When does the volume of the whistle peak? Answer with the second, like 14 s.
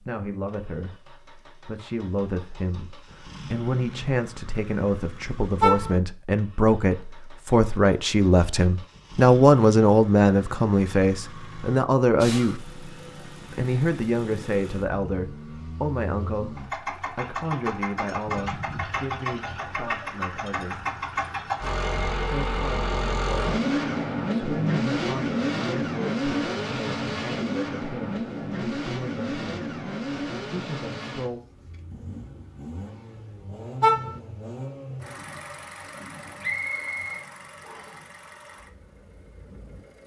37 s.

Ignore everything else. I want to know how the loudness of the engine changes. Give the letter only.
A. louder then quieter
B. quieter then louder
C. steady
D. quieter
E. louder
A.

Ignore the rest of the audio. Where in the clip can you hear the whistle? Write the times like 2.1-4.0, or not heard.
36.4-38.0.